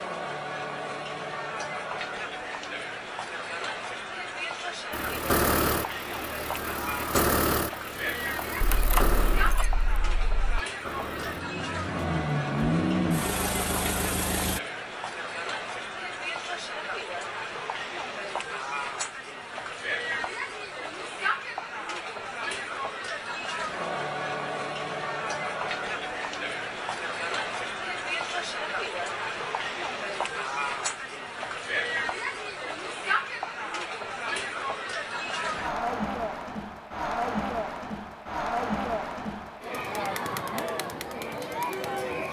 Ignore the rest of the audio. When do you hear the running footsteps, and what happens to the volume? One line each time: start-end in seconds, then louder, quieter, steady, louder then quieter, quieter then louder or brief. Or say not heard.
not heard.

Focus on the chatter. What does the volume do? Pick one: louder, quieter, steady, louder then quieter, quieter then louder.
steady.